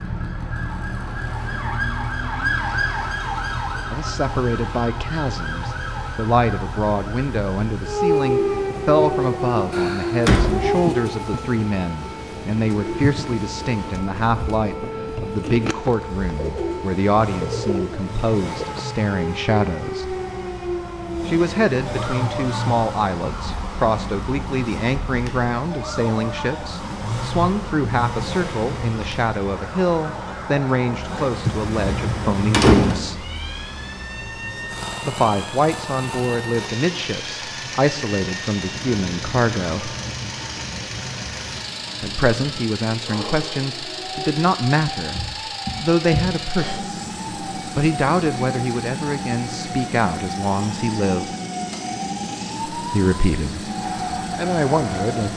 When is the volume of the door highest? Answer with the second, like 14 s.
33 s.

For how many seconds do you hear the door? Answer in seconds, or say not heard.
4 s.